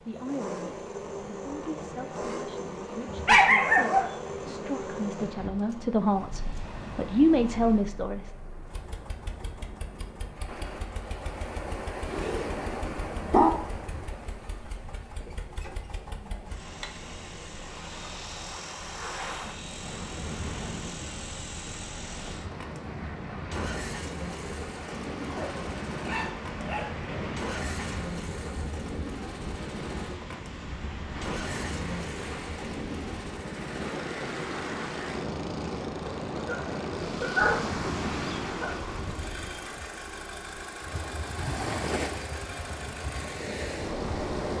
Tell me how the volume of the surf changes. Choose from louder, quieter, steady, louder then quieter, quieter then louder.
louder.